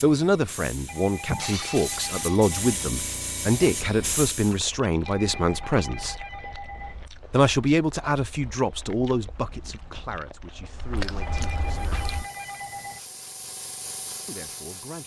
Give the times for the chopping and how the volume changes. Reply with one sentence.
You can't hear the chopping here.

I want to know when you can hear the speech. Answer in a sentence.
The speech can be heard from 0.0 to 6.2 s, from 7.3 to 12.1 s and from 14.2 to 15.0 s.